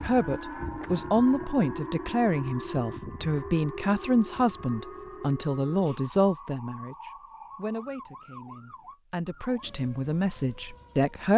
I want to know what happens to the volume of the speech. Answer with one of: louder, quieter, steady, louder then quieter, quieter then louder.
quieter then louder.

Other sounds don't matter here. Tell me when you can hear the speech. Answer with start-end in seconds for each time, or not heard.
0.0-11.3.